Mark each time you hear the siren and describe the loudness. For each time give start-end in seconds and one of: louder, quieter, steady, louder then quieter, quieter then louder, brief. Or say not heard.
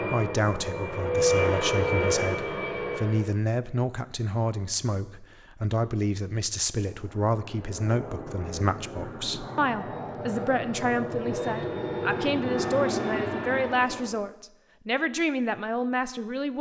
not heard.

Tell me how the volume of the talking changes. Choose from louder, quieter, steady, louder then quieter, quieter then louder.
steady.